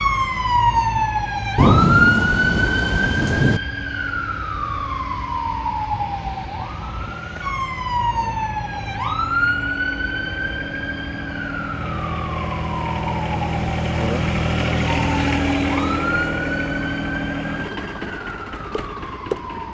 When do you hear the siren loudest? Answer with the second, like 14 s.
2 s.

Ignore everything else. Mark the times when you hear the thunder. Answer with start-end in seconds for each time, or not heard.
1.6-3.6.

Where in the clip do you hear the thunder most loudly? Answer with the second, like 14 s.
2 s.